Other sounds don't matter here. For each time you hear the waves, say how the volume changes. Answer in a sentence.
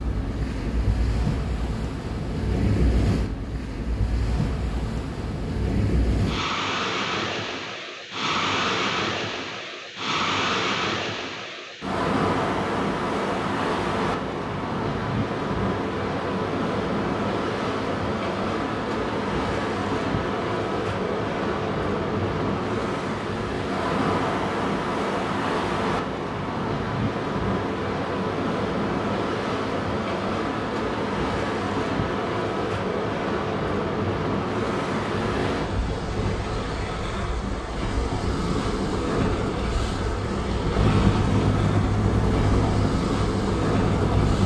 You can hear the waves from 0.0 to 44.4 s, at a steady volume.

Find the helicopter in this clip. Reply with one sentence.
The helicopter can be heard from 40.7 to 44.4 s.